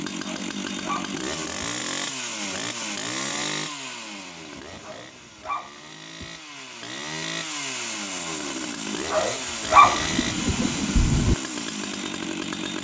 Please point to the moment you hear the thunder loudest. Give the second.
11 s.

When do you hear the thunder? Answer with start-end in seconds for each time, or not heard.
9.8-11.3.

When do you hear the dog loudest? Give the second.
10 s.